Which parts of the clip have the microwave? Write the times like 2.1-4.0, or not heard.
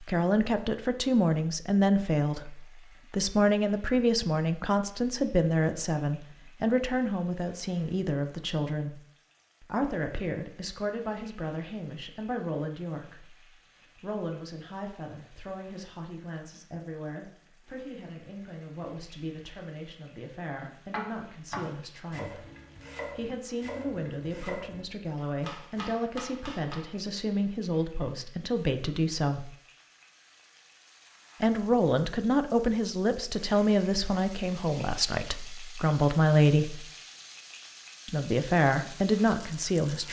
not heard.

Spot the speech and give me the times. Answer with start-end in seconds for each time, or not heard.
0.0-9.0, 9.6-22.4, 23.1-29.6, 31.4-36.9, 38.0-40.0.